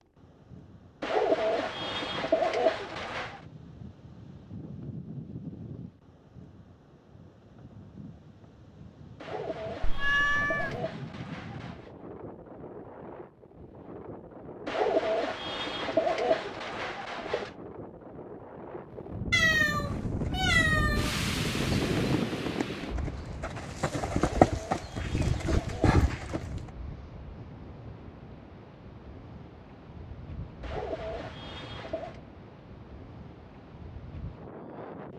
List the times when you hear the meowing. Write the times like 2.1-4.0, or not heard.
9.8-10.8, 19.3-21.1.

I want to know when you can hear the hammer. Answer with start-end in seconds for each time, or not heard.
not heard.